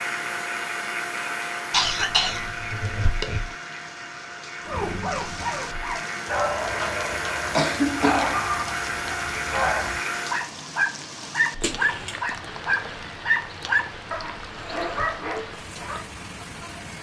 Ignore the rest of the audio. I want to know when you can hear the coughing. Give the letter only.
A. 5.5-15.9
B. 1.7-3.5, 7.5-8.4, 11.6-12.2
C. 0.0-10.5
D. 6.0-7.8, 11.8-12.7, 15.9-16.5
B.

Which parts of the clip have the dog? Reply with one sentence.
The dog can be heard from 4.7 to 16.1 s.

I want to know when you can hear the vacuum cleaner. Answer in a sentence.
The vacuum cleaner can be heard from 0.0 to 10.5 s.